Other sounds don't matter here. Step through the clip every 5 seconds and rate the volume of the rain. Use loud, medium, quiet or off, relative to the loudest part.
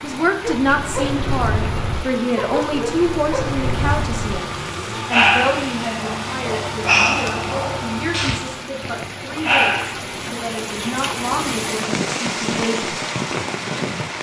medium, medium, loud.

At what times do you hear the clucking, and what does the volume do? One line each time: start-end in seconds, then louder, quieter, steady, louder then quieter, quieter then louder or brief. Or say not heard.
not heard.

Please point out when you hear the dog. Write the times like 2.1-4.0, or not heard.
0.4-10.1.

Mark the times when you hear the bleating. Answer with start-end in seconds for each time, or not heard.
not heard.